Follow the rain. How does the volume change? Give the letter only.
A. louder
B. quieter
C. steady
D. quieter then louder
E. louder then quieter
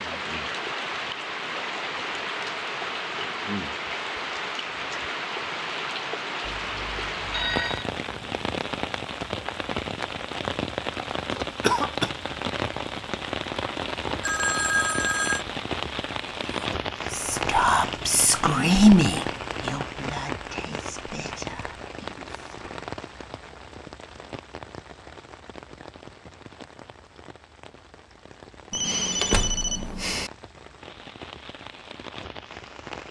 B.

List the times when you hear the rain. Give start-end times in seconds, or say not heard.
0.0-33.0.